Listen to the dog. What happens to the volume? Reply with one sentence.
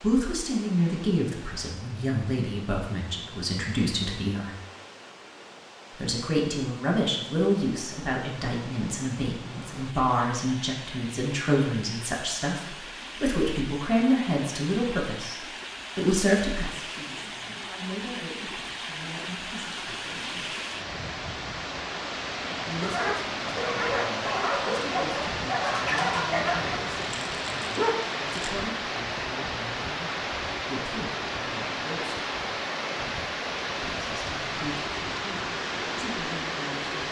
The volume of the dog goes down.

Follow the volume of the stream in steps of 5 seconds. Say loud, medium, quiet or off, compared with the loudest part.
quiet, quiet, medium, medium, loud, loud, loud, loud.